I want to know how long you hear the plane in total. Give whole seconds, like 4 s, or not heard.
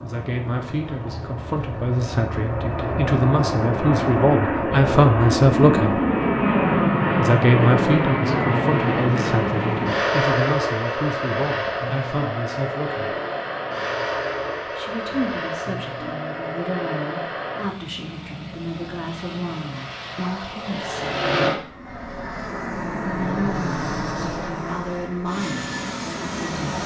27 s.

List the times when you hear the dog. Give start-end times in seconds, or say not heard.
not heard.